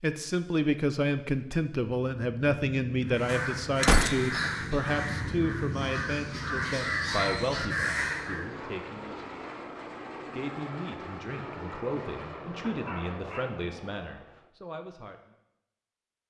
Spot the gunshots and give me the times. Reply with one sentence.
You can hear the gunshots from 3.8 to 4.5 s.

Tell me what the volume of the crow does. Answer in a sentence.
The volume of the crow goes down, then up.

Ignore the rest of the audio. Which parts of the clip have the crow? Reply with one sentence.
The crow can be heard from 3.0 to 8.5 s.